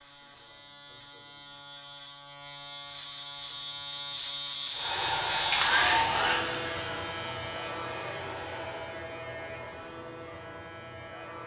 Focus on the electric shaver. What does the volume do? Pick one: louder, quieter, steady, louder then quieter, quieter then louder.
louder then quieter.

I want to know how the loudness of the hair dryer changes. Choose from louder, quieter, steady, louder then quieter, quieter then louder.
quieter.